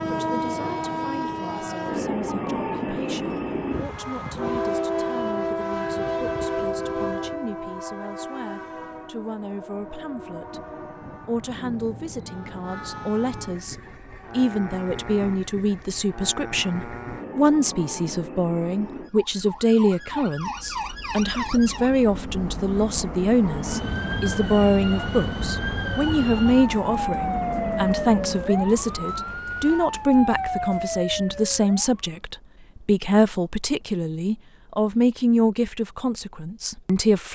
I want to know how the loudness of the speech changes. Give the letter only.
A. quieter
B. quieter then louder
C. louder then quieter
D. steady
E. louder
E.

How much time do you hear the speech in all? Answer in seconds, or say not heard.
37 s.